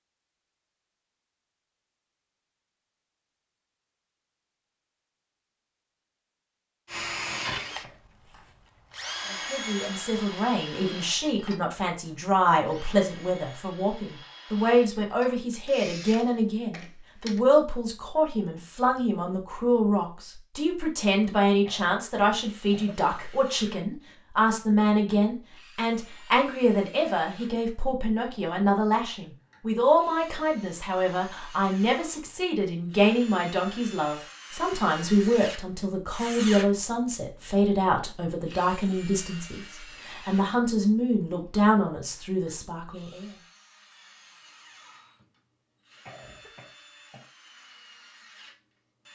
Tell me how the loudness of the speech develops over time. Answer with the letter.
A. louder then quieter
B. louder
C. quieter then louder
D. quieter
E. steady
E.